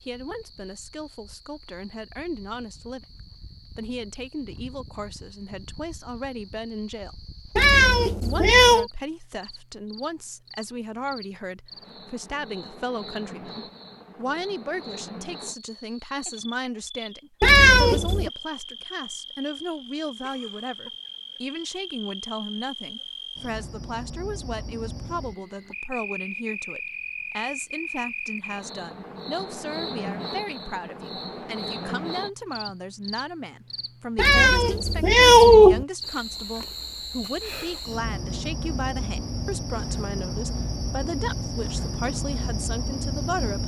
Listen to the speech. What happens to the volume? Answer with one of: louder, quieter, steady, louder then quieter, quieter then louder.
steady.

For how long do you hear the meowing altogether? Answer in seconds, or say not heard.
4 s.